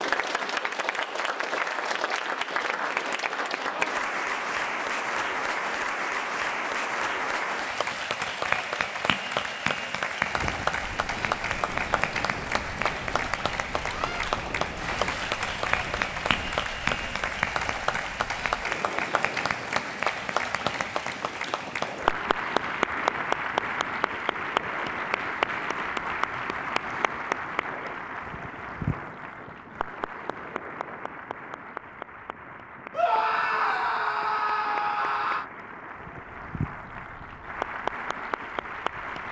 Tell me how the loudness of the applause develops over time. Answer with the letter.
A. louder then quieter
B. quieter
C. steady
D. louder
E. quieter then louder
B.